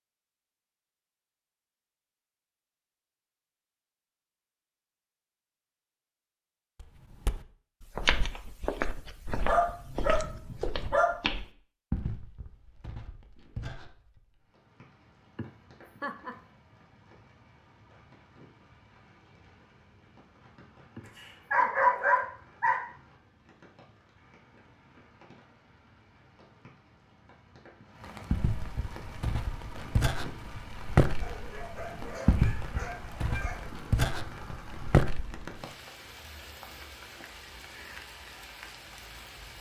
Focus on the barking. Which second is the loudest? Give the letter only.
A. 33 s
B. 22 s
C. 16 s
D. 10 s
B.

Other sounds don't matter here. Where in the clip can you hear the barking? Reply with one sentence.
You can hear the barking from 9.4 to 11.1 s, from 21.1 to 22.8 s and from 31.2 to 33.6 s.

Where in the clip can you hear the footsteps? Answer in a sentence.
You can hear the footsteps from 6.8 to 14.2 s and from 28.3 to 35.4 s.